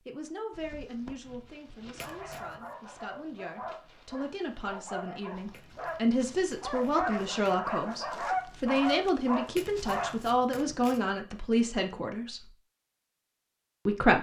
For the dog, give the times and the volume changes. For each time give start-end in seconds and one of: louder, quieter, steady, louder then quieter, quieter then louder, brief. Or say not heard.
0.5-10.3 louder.